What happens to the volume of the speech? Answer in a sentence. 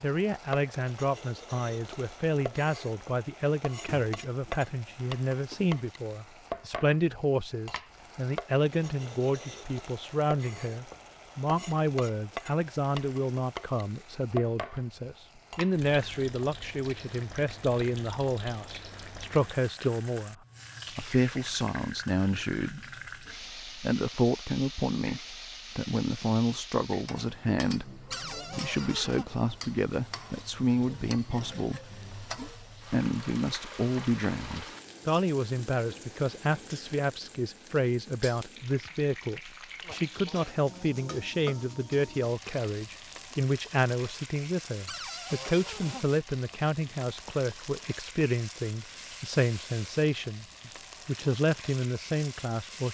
The volume of the speech stays about the same.